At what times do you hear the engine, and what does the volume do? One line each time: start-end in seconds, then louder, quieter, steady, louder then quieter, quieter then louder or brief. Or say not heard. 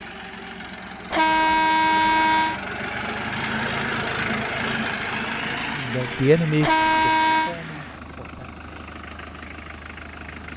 0.0-10.5 louder then quieter.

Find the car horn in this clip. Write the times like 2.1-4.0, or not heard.
1.1-2.6, 6.6-7.5.